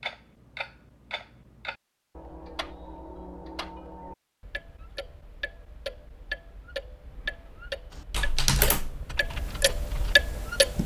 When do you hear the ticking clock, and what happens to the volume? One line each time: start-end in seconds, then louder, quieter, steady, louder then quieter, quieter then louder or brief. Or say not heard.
0.0-10.8 louder.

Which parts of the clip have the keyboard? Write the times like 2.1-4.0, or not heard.
8.0-10.8.